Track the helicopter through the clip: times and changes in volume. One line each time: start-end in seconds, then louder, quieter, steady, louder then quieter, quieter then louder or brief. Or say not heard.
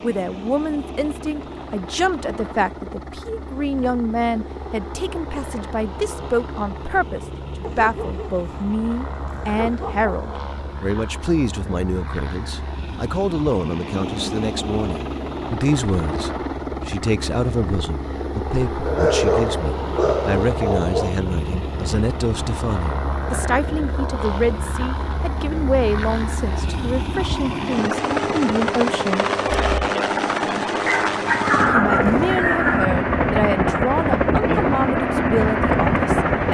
0.0-36.4 louder.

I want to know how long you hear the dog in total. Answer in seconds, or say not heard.
7 s.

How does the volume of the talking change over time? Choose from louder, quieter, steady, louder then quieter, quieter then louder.
steady.